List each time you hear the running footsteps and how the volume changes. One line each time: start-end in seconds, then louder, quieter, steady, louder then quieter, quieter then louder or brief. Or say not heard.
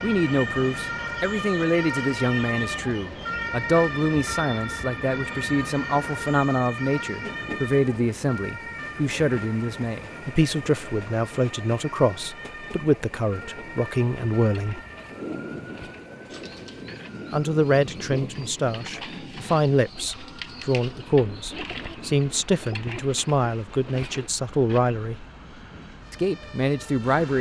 not heard.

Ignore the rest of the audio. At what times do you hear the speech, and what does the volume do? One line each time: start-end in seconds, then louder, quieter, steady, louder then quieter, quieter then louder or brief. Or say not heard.
0.0-14.8 steady
17.3-25.2 steady
26.1-27.3 brief.